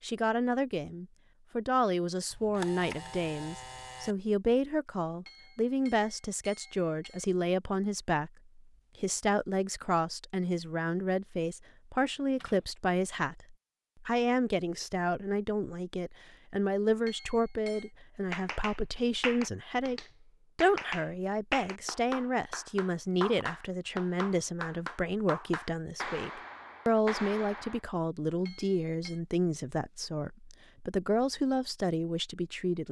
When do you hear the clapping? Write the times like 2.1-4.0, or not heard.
18.3-27.8.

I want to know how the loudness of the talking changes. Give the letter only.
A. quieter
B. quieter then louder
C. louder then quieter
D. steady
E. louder
D.